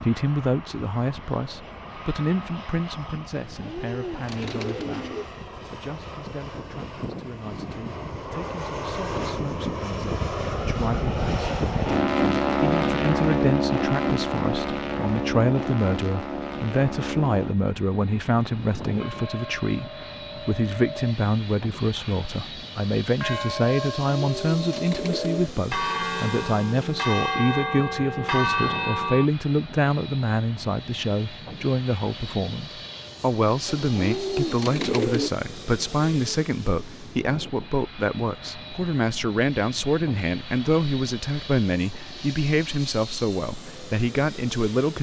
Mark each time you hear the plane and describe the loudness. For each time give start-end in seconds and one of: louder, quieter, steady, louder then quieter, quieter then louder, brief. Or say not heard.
0.0-44.9 louder then quieter.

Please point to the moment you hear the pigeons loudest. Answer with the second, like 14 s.
35 s.